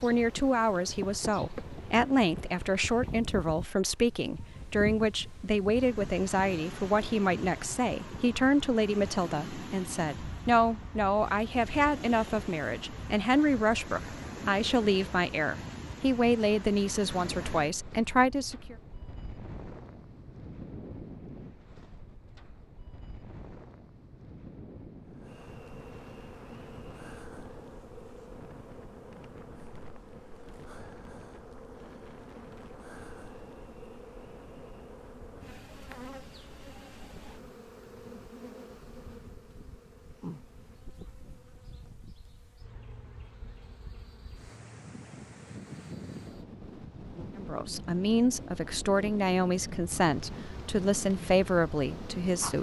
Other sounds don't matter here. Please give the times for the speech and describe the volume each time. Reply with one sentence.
The speech can be heard from 0.0 to 18.8 s, at a steady volume; and from 47.4 to 52.5 s, at a steady volume.